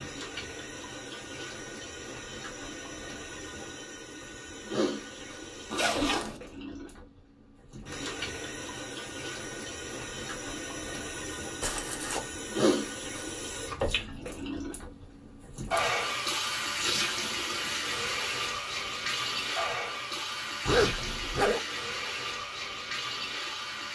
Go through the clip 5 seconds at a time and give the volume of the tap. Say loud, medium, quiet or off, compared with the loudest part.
medium, medium, loud, loud, loud.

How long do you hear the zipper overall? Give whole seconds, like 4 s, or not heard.
2 s.